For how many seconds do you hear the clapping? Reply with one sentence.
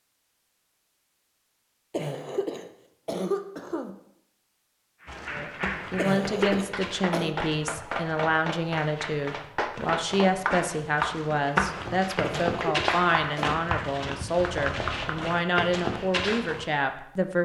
You can hear the clapping for 10 seconds altogether.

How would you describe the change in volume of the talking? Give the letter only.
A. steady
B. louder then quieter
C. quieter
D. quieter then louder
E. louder
A.